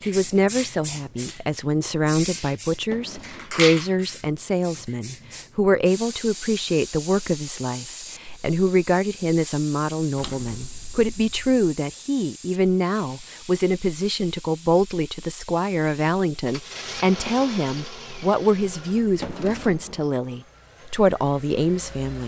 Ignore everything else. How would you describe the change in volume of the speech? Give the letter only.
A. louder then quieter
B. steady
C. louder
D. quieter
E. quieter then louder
B.